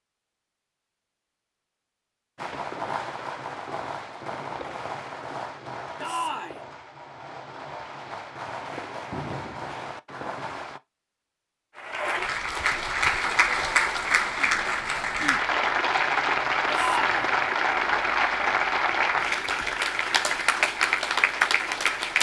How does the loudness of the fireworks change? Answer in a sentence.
The loudness of the fireworks goes down, then up.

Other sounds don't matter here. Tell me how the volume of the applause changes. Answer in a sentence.
The loudness of the applause stays about the same.